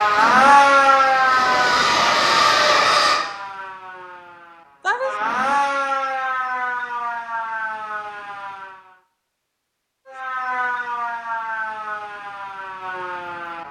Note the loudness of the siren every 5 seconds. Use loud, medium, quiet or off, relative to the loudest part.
loud, medium, medium.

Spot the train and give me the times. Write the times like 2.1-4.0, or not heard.
0.0-3.2.